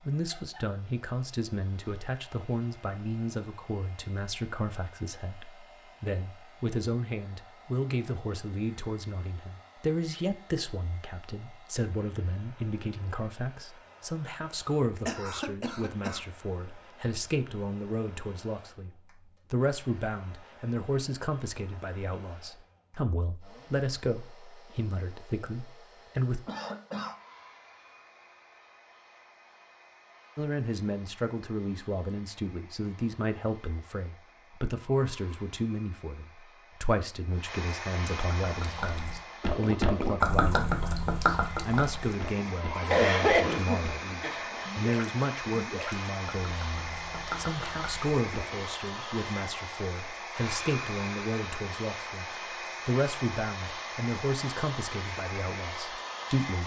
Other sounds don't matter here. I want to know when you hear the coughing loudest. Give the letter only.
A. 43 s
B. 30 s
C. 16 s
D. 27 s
A.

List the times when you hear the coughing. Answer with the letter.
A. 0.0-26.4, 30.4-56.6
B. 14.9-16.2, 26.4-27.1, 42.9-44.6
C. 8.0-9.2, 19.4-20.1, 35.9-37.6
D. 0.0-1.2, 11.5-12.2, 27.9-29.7
B.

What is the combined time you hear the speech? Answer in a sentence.
The speech can be heard for 53 seconds in total.